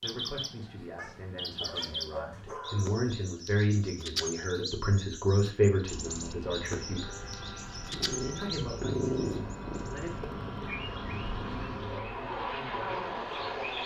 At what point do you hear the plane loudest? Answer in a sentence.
The loudest moment of the plane is at 13 seconds.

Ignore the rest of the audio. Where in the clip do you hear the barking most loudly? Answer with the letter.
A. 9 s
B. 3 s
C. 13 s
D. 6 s
A.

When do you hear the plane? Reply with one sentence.
The plane can be heard from 5.8 to 13.8 s.